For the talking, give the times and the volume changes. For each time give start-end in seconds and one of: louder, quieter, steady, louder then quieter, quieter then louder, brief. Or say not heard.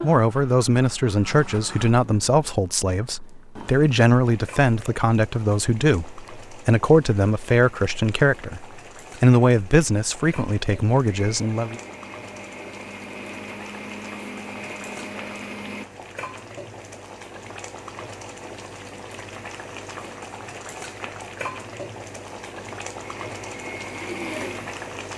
0.0-11.8 steady.